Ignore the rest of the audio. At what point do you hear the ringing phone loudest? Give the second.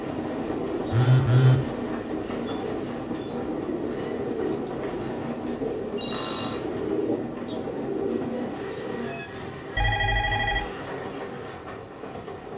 1 s.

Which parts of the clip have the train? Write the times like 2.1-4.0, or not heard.
0.0-12.5.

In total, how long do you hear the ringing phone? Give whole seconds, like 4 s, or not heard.
2 s.